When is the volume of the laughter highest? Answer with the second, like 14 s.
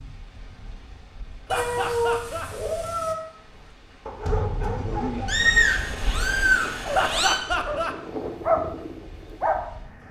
7 s.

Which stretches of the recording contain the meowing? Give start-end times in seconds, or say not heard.
1.5-3.1, 5.2-7.4.